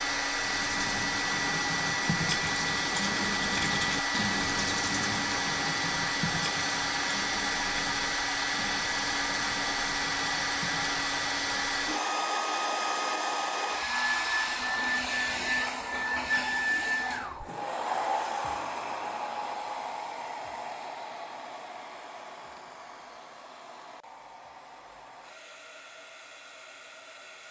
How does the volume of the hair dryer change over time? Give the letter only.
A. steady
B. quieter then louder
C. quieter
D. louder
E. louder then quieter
C.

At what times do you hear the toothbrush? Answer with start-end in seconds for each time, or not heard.
0.3-11.8.